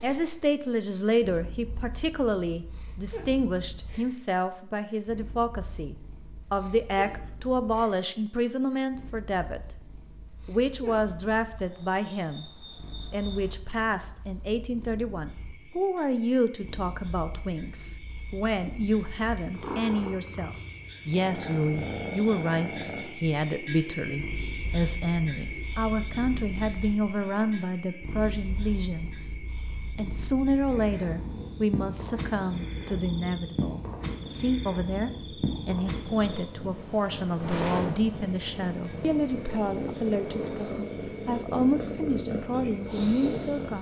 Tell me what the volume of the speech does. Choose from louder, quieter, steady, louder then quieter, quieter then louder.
steady.